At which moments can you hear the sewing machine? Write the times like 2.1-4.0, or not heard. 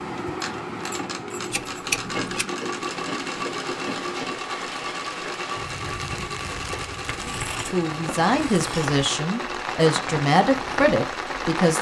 0.0-11.6.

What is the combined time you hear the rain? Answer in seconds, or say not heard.
9 s.